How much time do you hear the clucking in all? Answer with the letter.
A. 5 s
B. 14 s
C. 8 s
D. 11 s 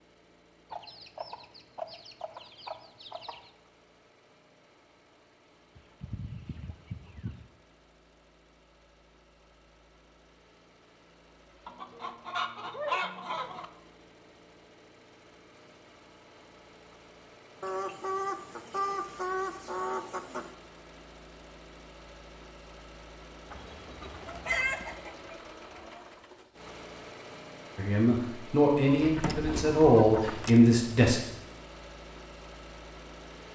B.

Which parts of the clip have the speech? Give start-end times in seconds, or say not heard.
27.8-31.2.